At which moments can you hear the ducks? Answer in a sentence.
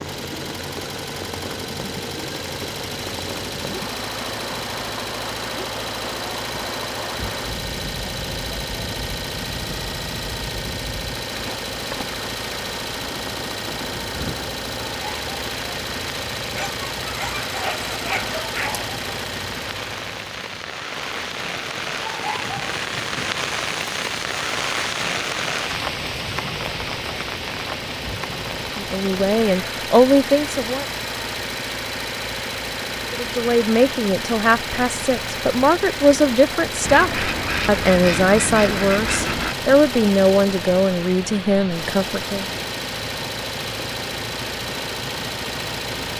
You can hear the ducks from 36.9 to 39.5 s.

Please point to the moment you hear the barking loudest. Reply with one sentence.
The loudest moment of the barking is at 18 seconds.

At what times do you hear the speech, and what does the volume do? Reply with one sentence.
You can hear the speech briefly from 28.8 to 30.9 s; and from 33.1 to 42.5 s, at a steady volume.